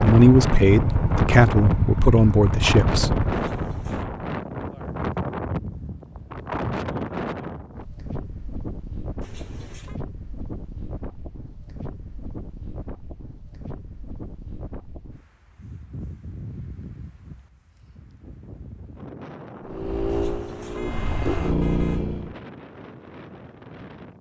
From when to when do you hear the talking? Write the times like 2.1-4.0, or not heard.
0.0-3.2.